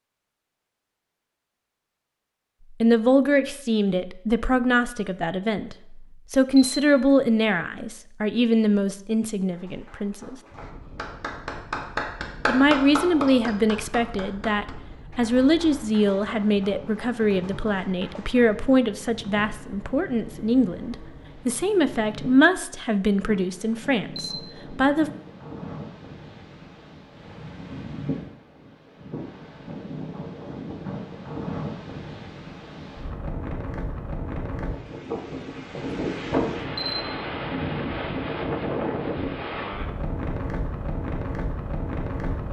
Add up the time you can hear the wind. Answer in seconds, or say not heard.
32 s.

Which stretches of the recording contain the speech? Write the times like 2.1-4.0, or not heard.
2.8-10.3, 12.4-25.1.